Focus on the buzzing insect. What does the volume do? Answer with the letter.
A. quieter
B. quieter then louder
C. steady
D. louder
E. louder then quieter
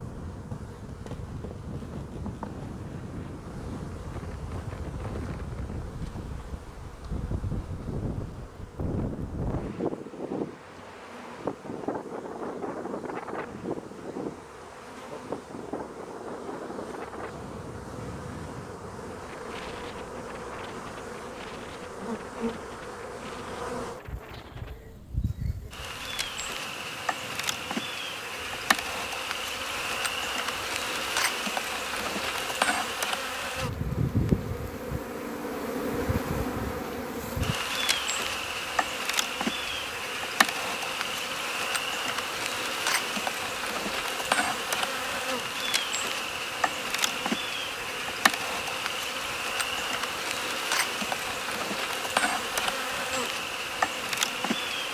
D.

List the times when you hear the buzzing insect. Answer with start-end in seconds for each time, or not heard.
0.0-54.8.